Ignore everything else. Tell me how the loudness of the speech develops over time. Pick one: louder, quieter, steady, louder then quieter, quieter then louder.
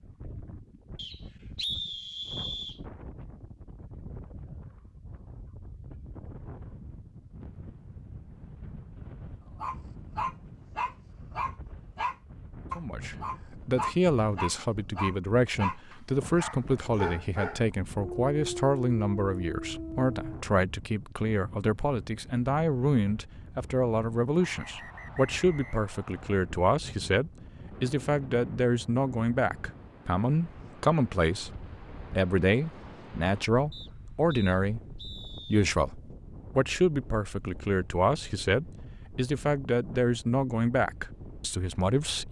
steady.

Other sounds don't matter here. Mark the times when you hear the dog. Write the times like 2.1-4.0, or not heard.
9.6-20.4.